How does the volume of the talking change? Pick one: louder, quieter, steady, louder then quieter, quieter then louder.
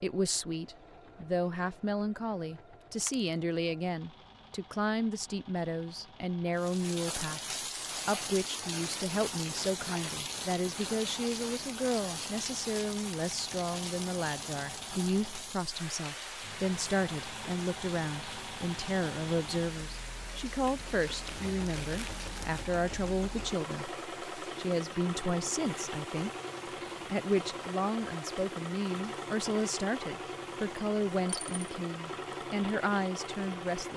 steady.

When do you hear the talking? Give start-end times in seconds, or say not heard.
0.0-26.3, 27.1-33.9.